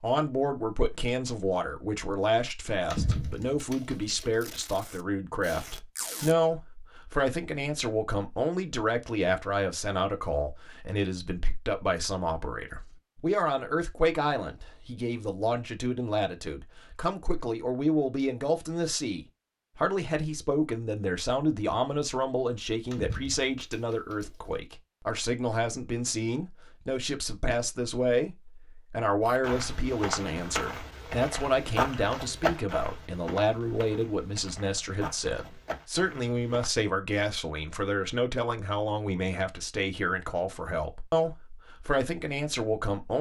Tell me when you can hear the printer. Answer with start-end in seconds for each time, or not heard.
not heard.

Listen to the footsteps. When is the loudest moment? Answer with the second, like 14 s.
32 s.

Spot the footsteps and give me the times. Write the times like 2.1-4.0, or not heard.
29.2-36.7.